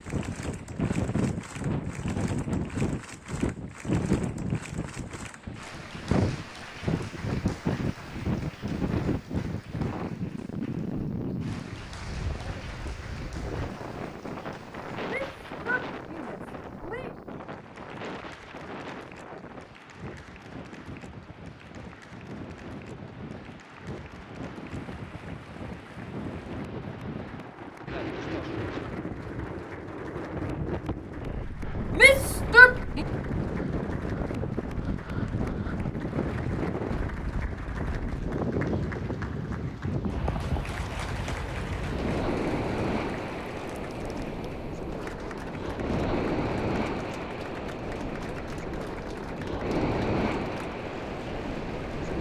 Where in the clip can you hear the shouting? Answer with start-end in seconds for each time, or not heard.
15.1-17.1, 31.9-33.0.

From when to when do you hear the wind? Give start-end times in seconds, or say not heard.
0.0-52.1.